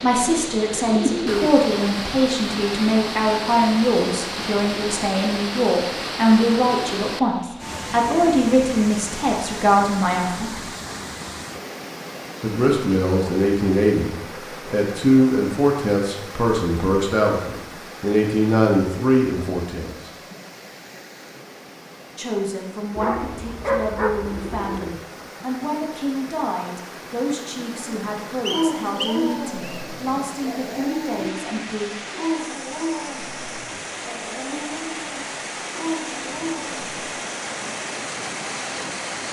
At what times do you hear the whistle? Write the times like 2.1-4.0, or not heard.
28.4-29.9.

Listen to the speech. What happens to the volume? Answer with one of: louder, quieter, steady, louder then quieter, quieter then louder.
quieter.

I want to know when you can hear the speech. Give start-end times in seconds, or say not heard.
0.0-10.6, 12.4-20.1, 22.1-31.9.